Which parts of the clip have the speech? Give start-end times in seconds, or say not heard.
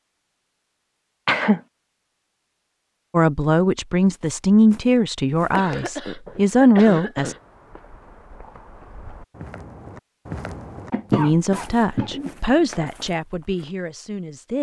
3.1-7.3, 11.2-14.5.